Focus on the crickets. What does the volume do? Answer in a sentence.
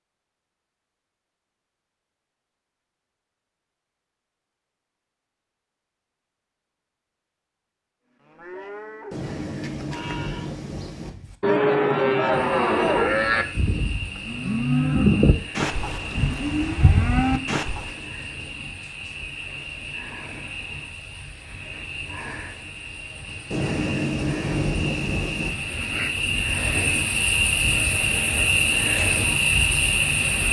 The loudness of the crickets goes up.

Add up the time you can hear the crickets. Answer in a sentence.
The crickets can be heard for 18 seconds in total.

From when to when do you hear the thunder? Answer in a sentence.
You can hear the thunder from 9.1 to 11.1 s and from 23.5 to 25.5 s.